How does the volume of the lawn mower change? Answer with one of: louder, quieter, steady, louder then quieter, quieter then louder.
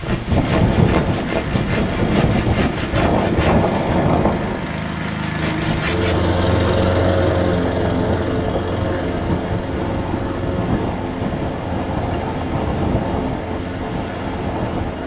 louder then quieter.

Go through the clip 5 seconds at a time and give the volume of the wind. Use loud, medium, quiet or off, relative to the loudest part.
loud, medium, medium.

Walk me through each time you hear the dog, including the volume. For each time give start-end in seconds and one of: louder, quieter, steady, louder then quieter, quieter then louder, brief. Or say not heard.
not heard.